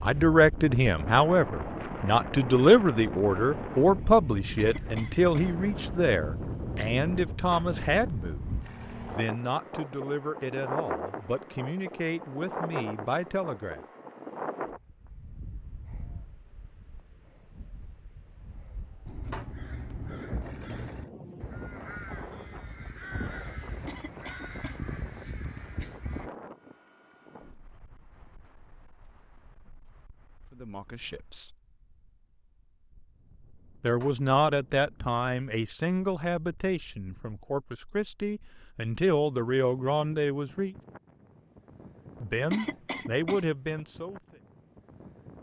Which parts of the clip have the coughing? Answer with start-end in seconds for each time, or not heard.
4.5-5.5, 23.9-24.8, 42.5-43.5.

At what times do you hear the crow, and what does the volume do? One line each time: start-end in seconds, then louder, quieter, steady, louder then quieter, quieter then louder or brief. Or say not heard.
19.1-26.3 steady.